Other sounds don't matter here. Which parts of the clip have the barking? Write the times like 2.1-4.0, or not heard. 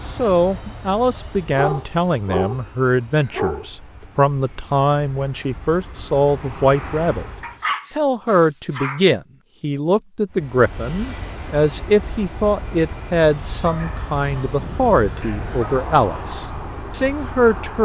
1.5-3.6, 7.4-9.0, 13.3-16.1.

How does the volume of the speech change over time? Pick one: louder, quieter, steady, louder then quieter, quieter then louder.
steady.